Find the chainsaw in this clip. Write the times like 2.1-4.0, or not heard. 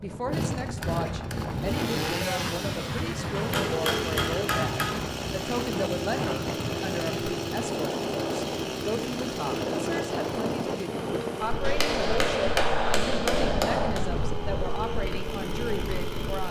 0.0-16.4.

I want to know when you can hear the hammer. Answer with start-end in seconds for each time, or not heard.
3.4-5.0, 11.6-14.1.